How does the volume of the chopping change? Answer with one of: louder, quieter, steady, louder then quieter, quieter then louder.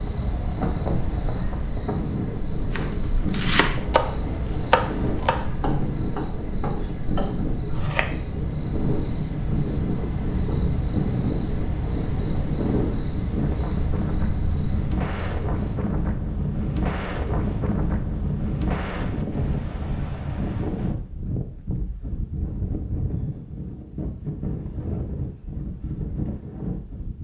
quieter.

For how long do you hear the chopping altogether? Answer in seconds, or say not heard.
5 s.